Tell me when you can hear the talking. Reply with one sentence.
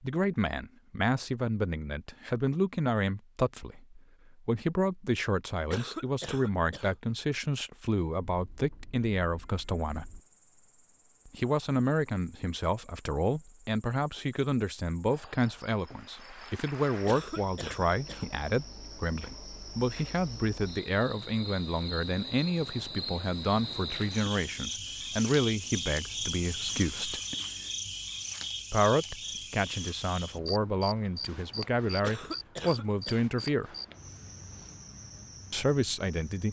You can hear the talking from 0.0 to 10.1 s, from 11.2 to 27.2 s, from 28.7 to 33.8 s and from 35.5 to 36.4 s.